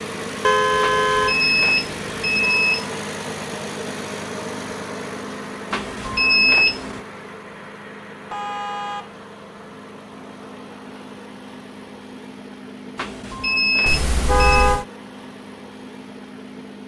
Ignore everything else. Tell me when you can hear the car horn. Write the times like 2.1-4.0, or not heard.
0.4-1.4, 8.3-9.1, 13.8-14.8.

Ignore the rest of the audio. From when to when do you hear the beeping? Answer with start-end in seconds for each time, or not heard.
0.8-3.1, 5.7-7.0, 12.9-14.7.